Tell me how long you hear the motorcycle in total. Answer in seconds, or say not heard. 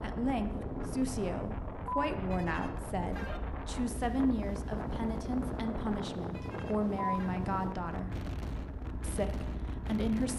10 s.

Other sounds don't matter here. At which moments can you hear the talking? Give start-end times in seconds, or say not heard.
0.0-8.2, 9.0-10.3.